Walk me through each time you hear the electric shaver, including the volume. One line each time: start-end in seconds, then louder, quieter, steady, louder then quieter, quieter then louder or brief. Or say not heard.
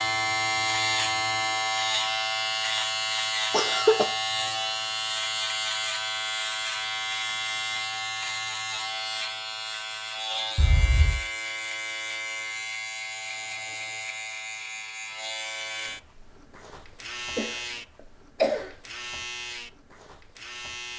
0.0-20.9 quieter.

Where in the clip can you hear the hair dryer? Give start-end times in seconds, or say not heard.
not heard.